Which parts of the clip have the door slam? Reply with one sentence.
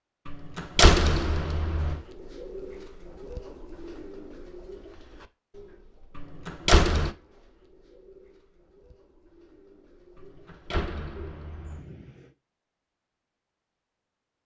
You can hear the door slam from 0.2 to 2.0 s, from 6.2 to 7.1 s and from 10.2 to 11.8 s.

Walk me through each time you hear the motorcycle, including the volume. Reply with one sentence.
You can't hear the motorcycle here.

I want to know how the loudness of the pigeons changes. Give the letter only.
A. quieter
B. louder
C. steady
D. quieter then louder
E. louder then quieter
D.